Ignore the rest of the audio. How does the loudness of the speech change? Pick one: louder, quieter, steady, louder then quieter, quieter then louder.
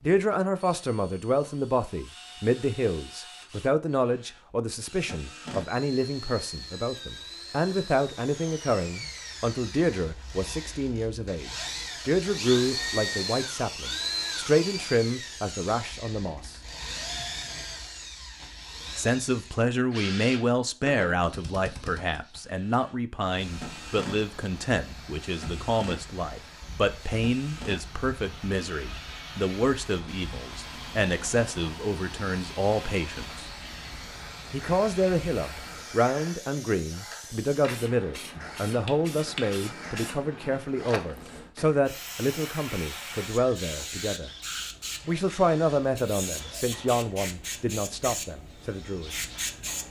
steady.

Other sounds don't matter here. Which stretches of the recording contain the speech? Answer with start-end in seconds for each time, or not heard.
0.0-16.6, 18.9-33.5, 34.5-44.4, 45.0-49.1.